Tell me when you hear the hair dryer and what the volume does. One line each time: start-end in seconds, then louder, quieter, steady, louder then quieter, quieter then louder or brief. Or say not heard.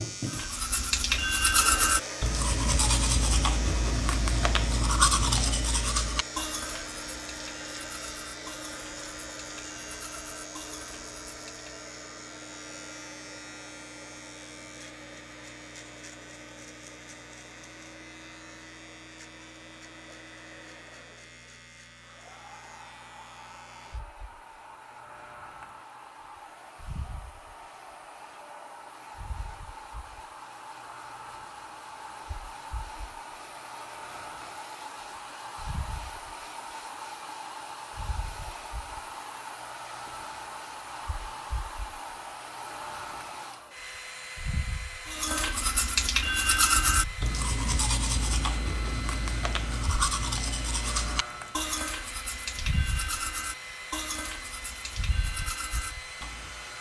0.0-56.7 quieter then louder.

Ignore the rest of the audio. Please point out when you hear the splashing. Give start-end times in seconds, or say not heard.
not heard.